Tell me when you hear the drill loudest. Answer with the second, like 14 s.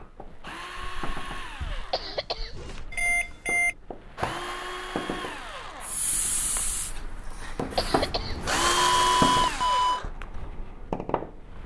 9 s.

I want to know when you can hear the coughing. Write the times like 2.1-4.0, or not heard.
1.9-2.9, 7.8-9.2.